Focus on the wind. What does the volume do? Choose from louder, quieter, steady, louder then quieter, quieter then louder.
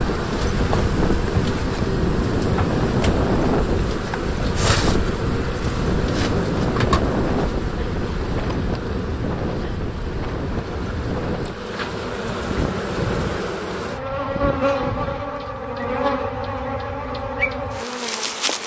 quieter.